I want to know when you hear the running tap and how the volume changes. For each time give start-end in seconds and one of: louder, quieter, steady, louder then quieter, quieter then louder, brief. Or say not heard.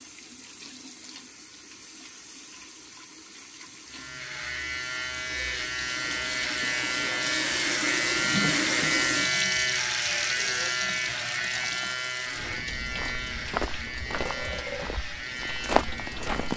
0.0-16.5 louder then quieter.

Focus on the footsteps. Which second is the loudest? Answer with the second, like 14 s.
16 s.